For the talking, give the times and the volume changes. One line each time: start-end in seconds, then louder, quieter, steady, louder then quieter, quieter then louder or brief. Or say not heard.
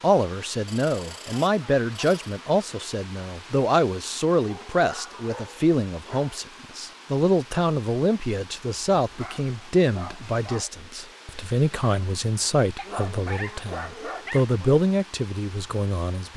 0.0-16.3 steady.